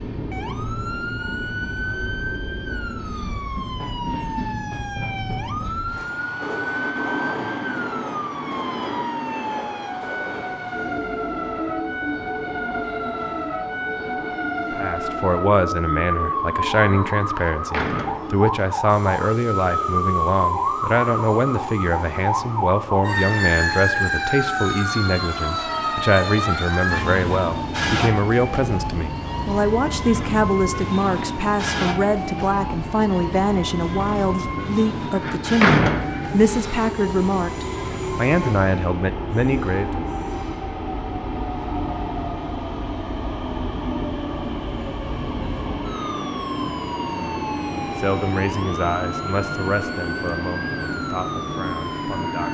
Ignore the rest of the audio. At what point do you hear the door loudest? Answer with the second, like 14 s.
36 s.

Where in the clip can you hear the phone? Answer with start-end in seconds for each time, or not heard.
not heard.